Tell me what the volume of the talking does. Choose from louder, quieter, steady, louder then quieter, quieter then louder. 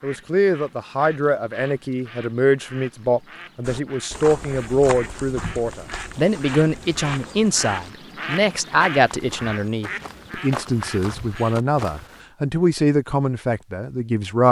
steady.